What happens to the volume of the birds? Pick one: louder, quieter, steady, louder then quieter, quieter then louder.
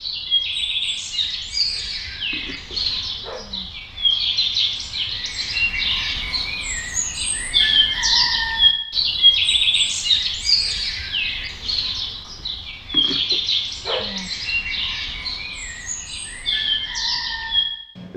louder then quieter.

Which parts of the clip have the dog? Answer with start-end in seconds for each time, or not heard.
1.9-3.7, 12.3-14.3.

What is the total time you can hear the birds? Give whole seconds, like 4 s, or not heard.
18 s.